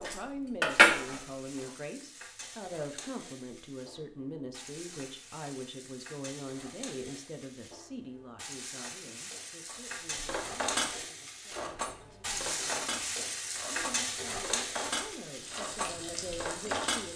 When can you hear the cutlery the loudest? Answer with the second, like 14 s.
1 s.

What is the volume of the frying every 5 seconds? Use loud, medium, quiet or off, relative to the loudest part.
quiet, medium, loud, medium.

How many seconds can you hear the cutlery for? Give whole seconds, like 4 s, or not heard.
9 s.